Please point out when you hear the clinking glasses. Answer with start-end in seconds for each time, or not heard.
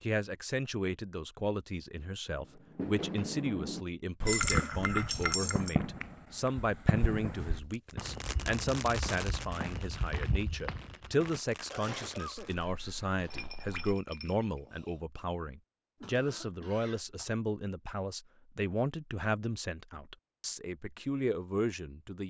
4.2-5.8, 13.3-15.0.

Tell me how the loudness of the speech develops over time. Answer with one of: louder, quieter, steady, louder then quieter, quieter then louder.
steady.